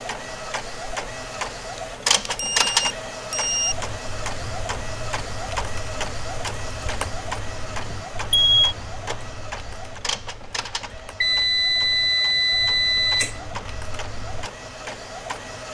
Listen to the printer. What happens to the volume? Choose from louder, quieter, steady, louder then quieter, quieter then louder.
quieter.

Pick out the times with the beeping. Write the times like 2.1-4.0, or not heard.
1.8-3.8, 7.9-8.8, 11.2-13.6.